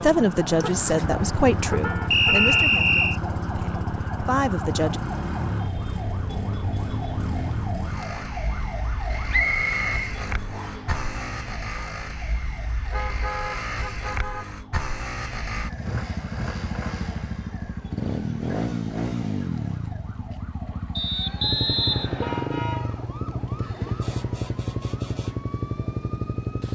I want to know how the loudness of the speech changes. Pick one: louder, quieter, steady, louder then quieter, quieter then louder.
quieter then louder.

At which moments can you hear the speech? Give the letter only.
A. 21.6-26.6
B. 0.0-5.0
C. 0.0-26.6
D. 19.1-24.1
B.